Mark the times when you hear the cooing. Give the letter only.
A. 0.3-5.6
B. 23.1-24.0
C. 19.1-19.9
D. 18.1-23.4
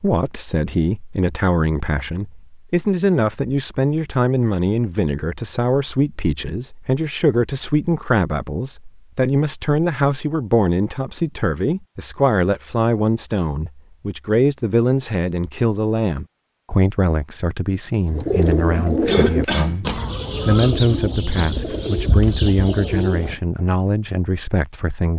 D.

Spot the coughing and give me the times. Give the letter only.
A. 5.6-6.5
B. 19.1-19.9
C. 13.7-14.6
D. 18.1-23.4
B.